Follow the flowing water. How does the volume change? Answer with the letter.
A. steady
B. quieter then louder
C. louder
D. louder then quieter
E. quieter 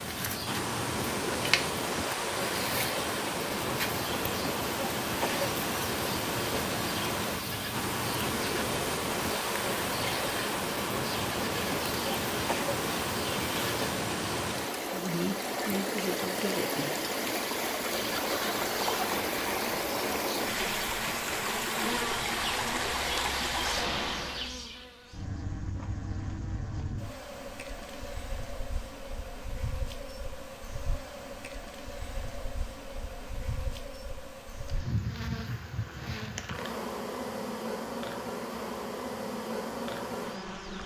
A.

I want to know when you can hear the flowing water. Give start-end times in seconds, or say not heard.
0.0-24.6.